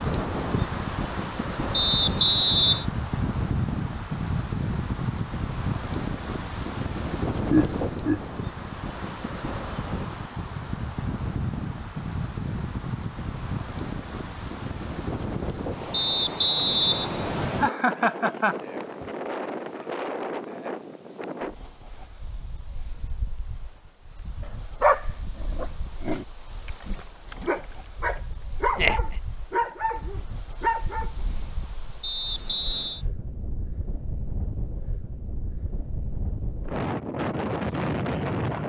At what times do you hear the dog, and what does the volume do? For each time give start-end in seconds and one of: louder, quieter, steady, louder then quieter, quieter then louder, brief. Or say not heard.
24.4-31.1 quieter then louder.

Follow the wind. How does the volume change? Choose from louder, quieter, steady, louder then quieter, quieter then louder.
quieter then louder.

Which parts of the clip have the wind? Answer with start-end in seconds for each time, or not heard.
0.0-38.6.